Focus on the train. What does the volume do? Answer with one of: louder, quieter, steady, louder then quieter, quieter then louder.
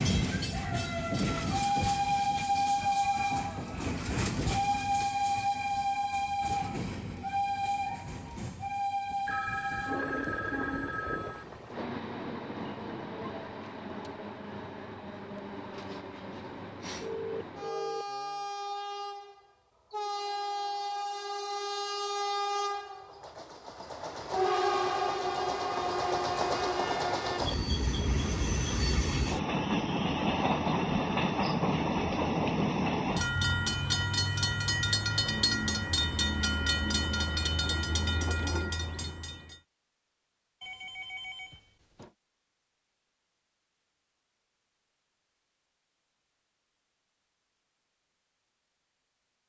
quieter then louder.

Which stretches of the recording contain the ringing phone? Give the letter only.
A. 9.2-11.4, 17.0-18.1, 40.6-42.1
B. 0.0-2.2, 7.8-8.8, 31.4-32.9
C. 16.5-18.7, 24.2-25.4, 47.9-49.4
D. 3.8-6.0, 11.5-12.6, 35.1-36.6
A.